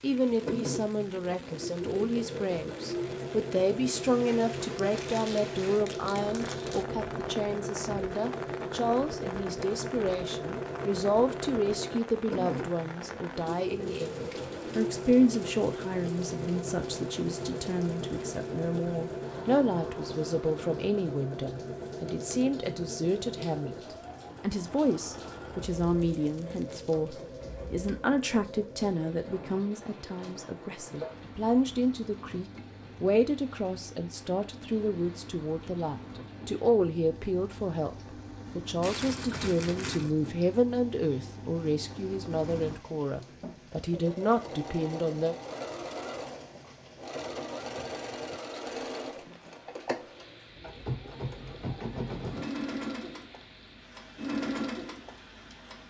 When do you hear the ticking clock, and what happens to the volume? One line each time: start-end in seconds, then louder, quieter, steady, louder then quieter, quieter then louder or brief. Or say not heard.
not heard.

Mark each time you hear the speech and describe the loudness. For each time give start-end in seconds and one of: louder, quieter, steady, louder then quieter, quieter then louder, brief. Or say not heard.
0.0-45.4 steady.